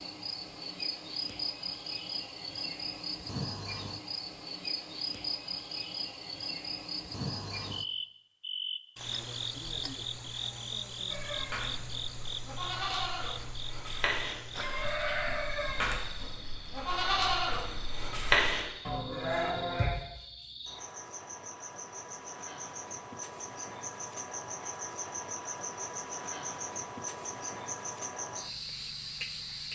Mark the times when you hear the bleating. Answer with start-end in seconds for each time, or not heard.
11.1-19.9.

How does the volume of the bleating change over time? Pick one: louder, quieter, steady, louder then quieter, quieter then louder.
louder.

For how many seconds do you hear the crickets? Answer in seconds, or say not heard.
30 s.